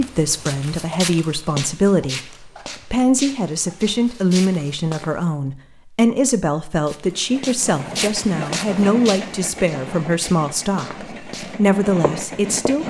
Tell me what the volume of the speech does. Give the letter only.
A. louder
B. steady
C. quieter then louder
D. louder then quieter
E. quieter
B.